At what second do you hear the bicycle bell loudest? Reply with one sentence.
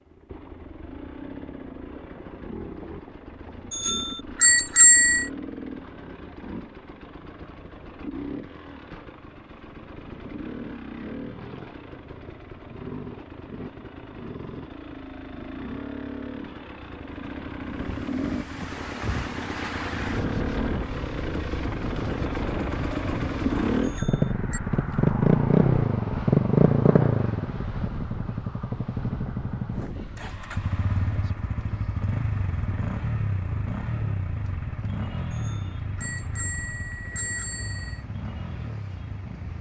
The loudest moment of the bicycle bell is at 5 seconds.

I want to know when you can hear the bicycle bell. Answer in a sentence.
The bicycle bell can be heard from 3.7 to 5.2 s, from 23.8 to 24.6 s and from 35.3 to 38.0 s.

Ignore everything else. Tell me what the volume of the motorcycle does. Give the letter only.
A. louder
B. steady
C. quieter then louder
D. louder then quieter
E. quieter
D.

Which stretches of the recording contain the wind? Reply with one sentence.
You can hear the wind from 17.6 to 39.5 s.